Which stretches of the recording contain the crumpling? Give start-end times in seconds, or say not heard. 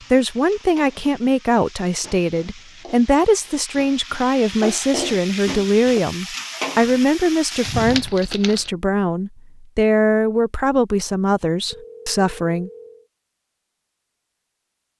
7.6-8.7.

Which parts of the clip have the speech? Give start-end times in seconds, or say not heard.
0.1-12.7.